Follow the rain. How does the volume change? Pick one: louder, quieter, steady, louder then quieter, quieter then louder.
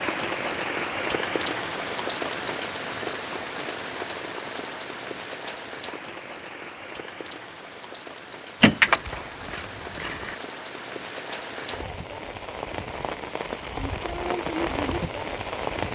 quieter then louder.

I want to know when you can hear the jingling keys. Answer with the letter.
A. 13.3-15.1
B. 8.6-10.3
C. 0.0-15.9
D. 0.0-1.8
B.